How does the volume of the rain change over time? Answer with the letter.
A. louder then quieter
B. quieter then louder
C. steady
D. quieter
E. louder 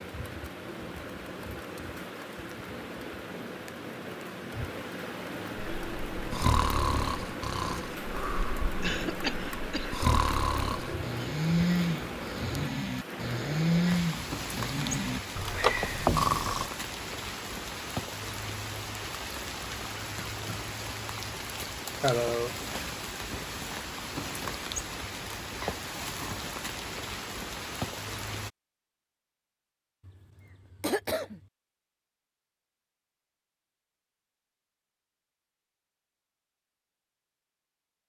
C.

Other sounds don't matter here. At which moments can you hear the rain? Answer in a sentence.
You can hear the rain from 0.0 to 28.5 s.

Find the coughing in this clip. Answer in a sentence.
The coughing can be heard from 8.8 to 10.1 s, from 22.0 to 22.6 s and from 30.1 to 31.4 s.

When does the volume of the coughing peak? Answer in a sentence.
The volume of the coughing peaks at 22 seconds.